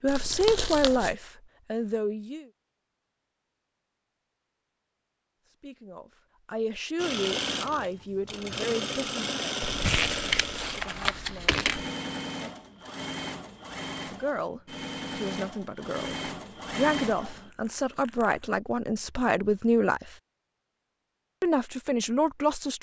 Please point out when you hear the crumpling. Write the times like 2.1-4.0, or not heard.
0.1-1.1, 9.6-11.8, 17.5-18.6.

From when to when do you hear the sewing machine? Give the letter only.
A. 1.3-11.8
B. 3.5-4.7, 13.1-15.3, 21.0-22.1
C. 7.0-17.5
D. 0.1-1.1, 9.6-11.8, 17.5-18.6
C.